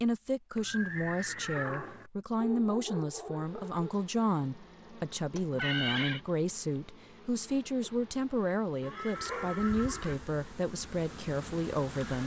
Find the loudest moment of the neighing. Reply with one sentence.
The loudest moment of the neighing is at 6 seconds.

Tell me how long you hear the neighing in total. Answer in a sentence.
The neighing can be heard for 4 seconds in total.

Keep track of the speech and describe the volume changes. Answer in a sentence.
The volume of the speech stays about the same.